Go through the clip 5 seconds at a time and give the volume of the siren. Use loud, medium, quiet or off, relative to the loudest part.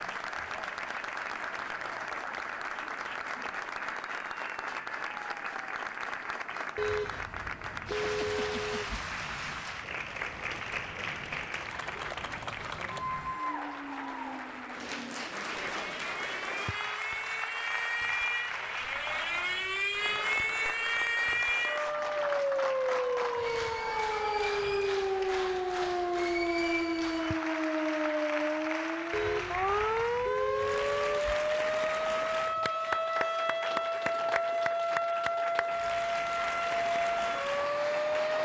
quiet, quiet, quiet, medium, loud, loud, loud, loud.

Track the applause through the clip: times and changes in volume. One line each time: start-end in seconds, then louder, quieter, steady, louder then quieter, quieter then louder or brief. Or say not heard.
0.0-38.3 steady.